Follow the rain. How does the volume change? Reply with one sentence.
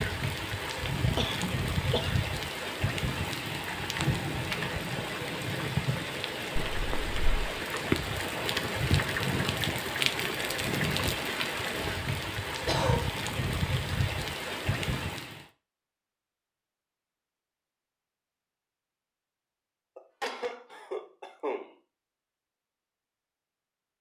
The loudness of the rain stays about the same.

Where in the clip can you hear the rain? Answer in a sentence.
The rain can be heard from 0.0 to 15.4 s.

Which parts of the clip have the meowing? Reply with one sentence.
You can hear the meowing from 6.5 to 7.6 s.